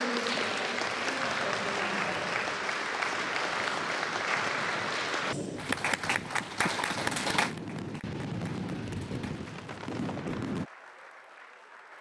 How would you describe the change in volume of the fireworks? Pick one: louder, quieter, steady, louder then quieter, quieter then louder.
louder.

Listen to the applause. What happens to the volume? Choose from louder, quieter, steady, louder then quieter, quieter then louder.
quieter.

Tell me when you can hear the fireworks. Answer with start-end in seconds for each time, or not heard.
0.2-10.7.